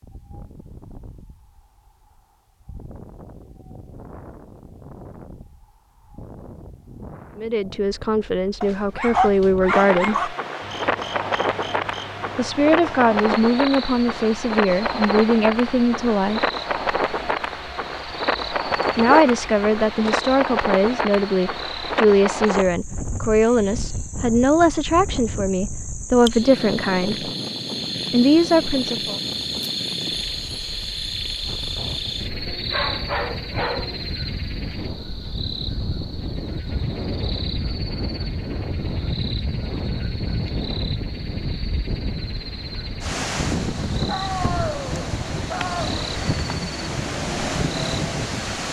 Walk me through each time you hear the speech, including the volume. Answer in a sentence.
The speech can be heard briefly from 7.3 to 10.3 s; from 12.3 to 16.4 s, at a steady volume; from 18.9 to 27.3 s, at a steady volume; and briefly from 28.1 to 29.1 s.